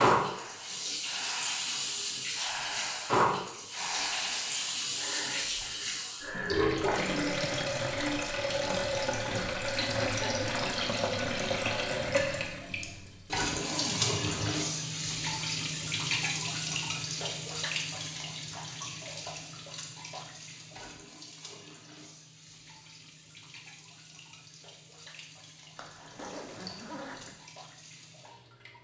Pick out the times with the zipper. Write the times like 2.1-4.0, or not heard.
4.7-5.8, 13.4-14.6, 25.8-27.3.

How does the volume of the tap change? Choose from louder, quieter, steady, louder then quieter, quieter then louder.
quieter.